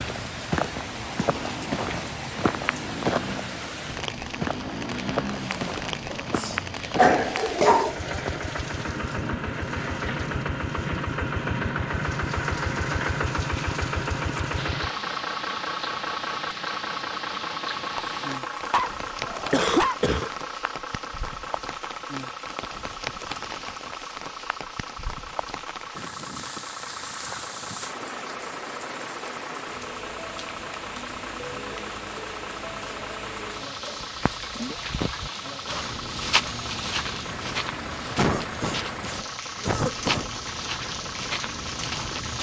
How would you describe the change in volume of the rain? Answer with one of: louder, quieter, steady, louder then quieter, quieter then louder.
steady.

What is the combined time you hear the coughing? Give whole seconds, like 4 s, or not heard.
5 s.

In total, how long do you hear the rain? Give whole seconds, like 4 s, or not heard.
42 s.